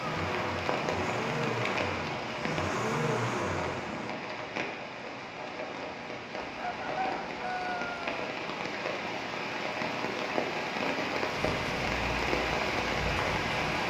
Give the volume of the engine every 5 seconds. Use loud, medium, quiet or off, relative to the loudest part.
loud, off, medium.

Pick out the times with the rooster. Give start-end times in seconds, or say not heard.
6.6-8.2.